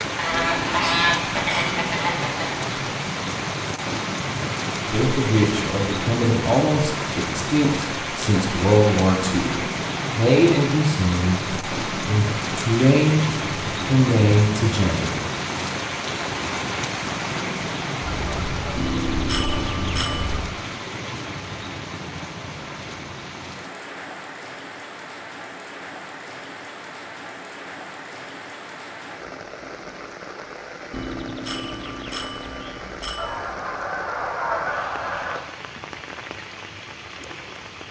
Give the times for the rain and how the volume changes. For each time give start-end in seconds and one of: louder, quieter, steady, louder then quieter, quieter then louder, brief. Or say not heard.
0.0-37.8 quieter.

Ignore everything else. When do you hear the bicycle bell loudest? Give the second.
19 s.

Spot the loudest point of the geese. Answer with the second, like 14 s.
1 s.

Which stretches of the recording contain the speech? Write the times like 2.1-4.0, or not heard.
4.9-15.2.